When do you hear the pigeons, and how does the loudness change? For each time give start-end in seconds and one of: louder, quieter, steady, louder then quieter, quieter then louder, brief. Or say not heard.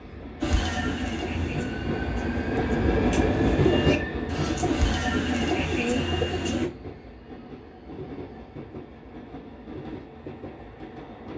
0.4-6.7 louder.